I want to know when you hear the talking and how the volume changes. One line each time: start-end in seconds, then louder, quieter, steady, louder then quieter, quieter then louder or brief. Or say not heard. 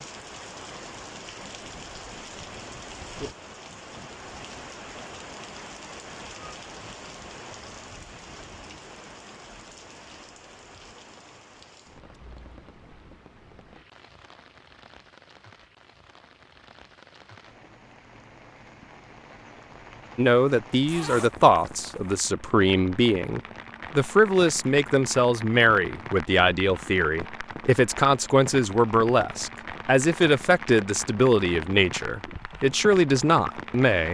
20.1-34.0 steady.